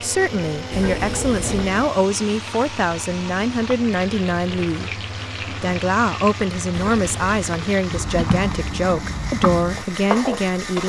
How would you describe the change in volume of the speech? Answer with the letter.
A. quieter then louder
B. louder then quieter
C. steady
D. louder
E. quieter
C.